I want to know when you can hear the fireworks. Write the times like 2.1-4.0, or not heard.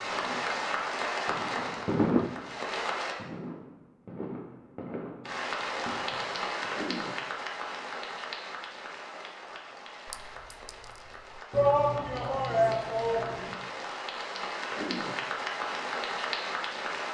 0.1-6.7.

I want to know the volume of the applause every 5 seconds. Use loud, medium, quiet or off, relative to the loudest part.
loud, loud, medium, loud.